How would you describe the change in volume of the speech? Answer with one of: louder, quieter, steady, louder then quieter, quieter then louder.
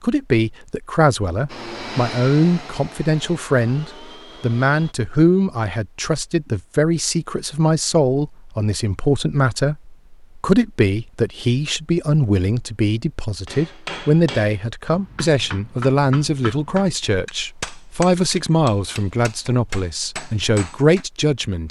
steady.